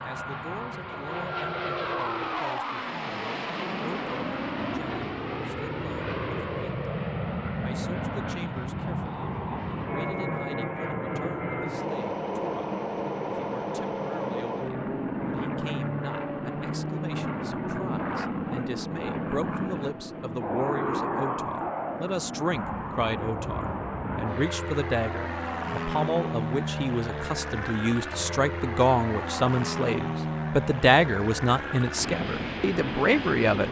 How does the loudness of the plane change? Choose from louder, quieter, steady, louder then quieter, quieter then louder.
steady.